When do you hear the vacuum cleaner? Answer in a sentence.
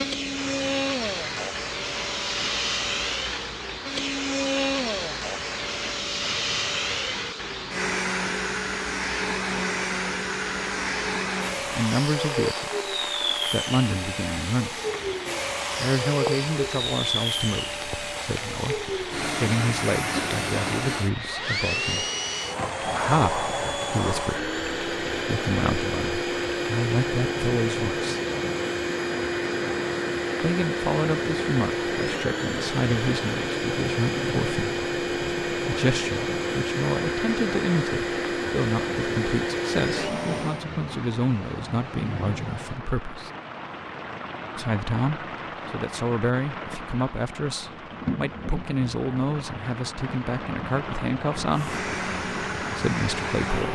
You can hear the vacuum cleaner from 0.0 to 40.6 s and from 51.5 to 53.6 s.